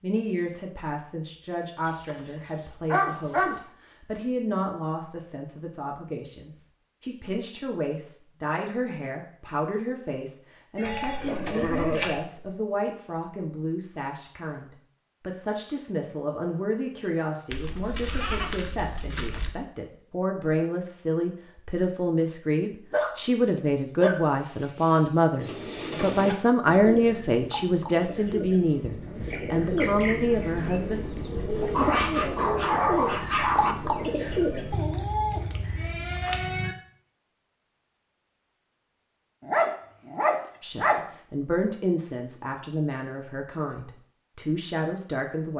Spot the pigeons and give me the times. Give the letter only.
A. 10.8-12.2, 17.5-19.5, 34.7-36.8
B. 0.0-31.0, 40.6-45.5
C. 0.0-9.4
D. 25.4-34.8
D.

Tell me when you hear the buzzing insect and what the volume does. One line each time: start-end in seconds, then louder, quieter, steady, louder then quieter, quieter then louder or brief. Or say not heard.
not heard.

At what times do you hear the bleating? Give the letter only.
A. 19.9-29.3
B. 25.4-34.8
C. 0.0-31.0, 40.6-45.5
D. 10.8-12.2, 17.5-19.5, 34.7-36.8
D.